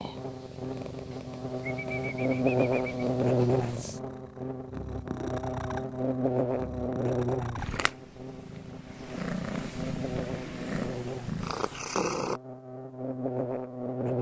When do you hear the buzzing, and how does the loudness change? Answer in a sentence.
You can hear the buzzing from 0.0 to 14.1 s, getting quieter.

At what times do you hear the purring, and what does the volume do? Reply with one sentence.
You can hear the purring from 0.0 to 12.4 s, getting louder.